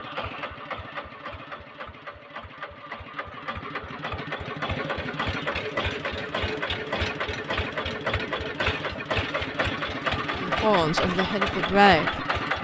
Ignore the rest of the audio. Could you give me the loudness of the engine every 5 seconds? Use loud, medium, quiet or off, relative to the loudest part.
medium, loud, loud.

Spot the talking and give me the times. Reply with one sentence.
You can hear the talking from 10.3 to 12.1 s.